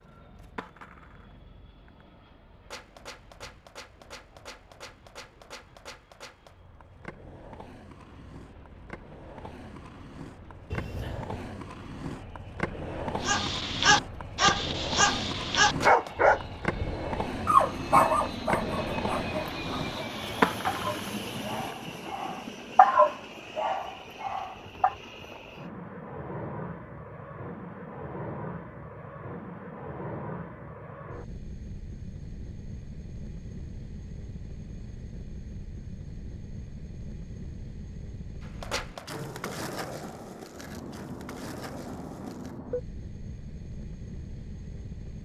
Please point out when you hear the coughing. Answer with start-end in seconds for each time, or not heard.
10.7-11.5.